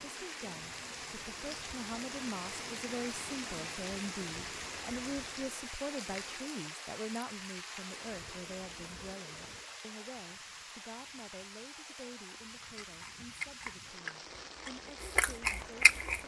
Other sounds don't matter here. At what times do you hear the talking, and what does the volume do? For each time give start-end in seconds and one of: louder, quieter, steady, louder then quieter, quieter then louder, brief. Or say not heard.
0.1-15.9 quieter.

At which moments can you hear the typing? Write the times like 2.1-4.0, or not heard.
not heard.